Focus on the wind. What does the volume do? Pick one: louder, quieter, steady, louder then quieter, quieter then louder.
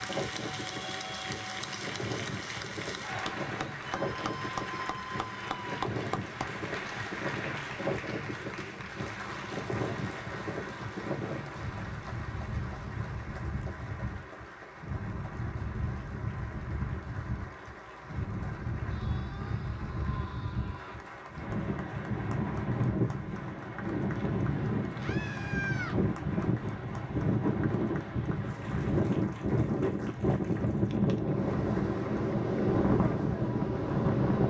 louder.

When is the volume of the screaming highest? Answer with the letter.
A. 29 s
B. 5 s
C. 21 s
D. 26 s
D.